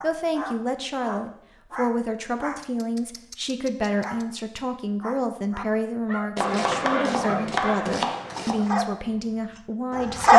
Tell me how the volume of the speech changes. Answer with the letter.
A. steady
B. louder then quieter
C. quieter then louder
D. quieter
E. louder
A.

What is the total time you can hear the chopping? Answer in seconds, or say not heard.
2 s.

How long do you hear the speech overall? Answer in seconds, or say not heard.
10 s.